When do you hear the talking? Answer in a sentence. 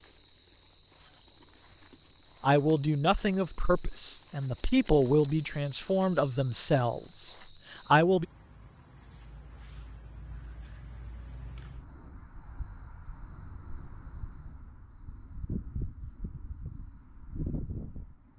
You can hear the talking from 2.4 to 8.2 s.